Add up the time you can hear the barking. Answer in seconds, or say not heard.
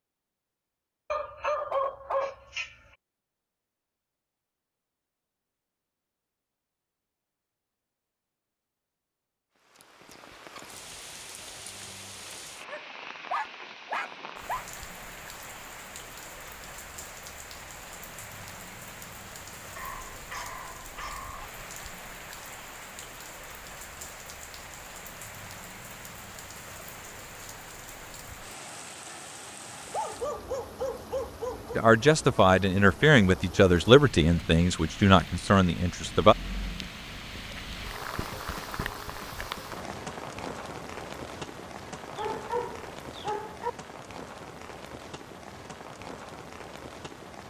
9 s.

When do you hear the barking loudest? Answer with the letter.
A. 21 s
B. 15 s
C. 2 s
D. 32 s
C.